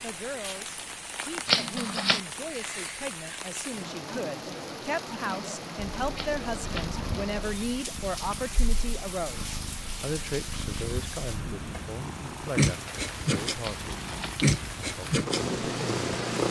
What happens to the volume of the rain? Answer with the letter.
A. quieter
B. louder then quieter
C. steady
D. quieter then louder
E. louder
C.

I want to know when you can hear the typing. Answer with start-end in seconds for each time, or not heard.
not heard.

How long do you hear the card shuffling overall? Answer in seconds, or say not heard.
2 s.